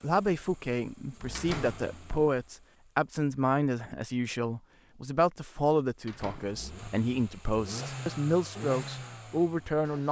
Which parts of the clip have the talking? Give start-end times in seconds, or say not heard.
0.0-10.0.